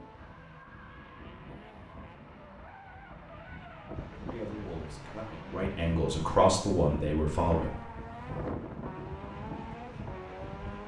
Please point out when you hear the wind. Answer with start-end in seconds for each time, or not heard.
0.0-10.8.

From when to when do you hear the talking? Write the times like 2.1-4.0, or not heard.
4.2-7.8.